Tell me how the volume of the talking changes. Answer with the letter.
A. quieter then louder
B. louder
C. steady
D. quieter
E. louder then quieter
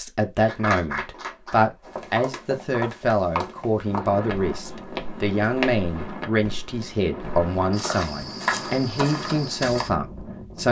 C.